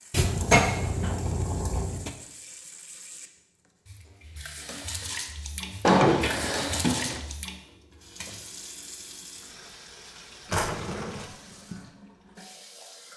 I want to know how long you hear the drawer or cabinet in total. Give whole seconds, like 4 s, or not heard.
4 s.